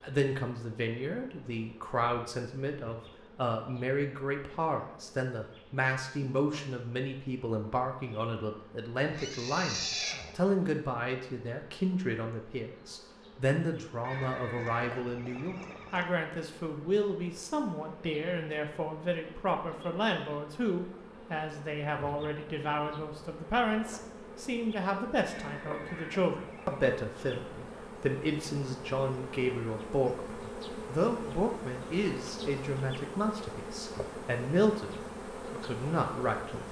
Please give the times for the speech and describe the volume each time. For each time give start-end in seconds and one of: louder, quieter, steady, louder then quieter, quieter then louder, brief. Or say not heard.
0.0-36.6 steady.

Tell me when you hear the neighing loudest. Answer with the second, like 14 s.
10 s.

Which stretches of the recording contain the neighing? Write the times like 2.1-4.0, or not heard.
9.0-10.3, 14.0-16.1, 25.2-26.8.